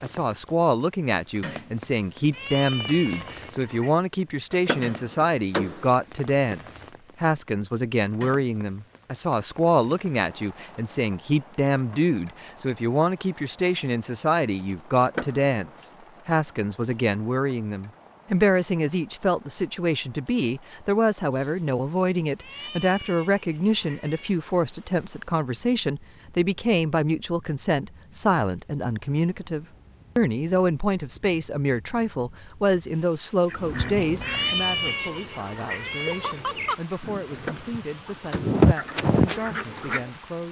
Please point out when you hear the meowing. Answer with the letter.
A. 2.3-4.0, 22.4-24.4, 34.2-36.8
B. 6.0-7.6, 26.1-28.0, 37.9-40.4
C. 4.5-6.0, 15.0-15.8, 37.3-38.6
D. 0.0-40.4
A.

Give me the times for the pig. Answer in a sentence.
The pig can't be heard in this clip.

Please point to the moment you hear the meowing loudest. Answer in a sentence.
The volume of the meowing peaks at 35 seconds.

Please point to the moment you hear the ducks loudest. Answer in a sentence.
The loudest moment of the ducks is at 39 seconds.